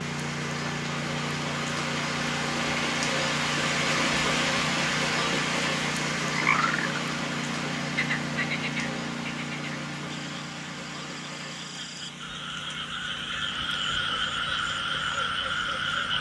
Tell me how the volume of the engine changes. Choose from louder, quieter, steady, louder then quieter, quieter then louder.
quieter.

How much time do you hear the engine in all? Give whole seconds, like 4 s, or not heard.
16 s.